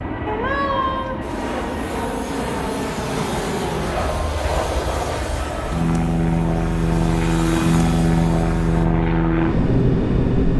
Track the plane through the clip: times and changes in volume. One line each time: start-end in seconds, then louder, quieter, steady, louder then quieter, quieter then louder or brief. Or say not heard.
0.0-10.5 louder.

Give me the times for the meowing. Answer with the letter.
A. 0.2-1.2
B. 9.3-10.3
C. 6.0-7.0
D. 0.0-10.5
A.